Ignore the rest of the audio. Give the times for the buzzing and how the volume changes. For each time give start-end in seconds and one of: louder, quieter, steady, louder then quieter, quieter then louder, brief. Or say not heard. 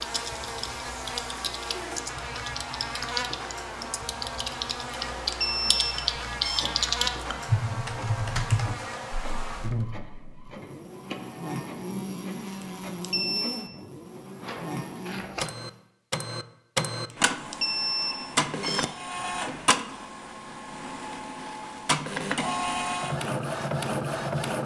0.0-15.9 steady.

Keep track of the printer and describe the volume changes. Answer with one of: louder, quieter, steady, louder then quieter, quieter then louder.
louder.